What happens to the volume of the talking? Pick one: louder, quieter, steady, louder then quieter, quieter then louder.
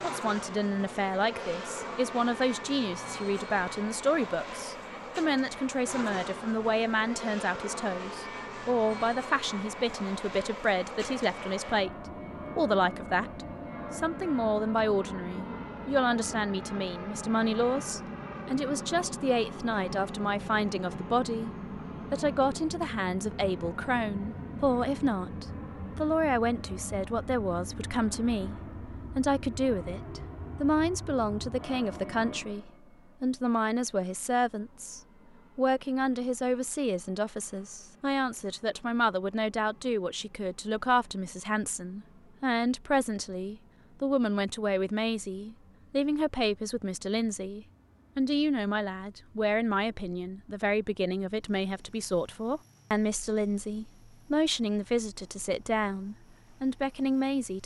steady.